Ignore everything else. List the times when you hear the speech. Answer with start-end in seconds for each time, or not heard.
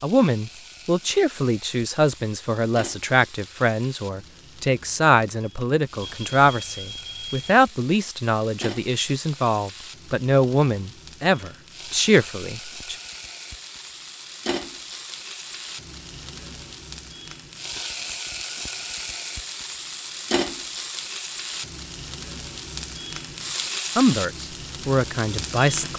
0.0-12.9, 23.9-25.9.